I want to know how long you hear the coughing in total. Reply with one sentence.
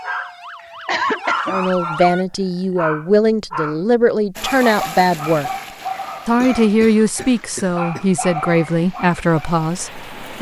The coughing can be heard for 3 seconds in total.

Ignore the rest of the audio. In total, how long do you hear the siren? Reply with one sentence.
The siren can be heard for 2 seconds in total.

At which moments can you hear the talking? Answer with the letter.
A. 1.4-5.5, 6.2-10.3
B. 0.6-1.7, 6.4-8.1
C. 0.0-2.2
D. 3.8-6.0
A.